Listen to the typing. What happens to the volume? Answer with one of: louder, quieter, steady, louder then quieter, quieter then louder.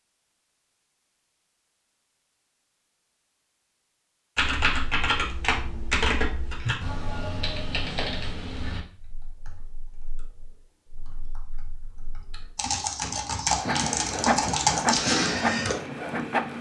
quieter then louder.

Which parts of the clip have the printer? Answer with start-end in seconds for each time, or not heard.
13.5-16.5.